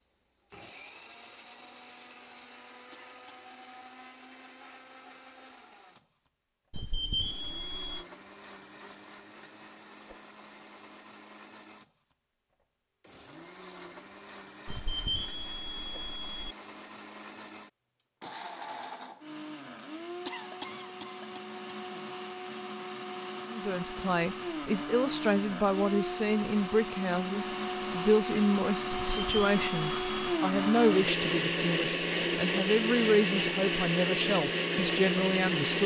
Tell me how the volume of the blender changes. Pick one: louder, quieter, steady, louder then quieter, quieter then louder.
louder.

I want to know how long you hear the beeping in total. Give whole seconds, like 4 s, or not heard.
5 s.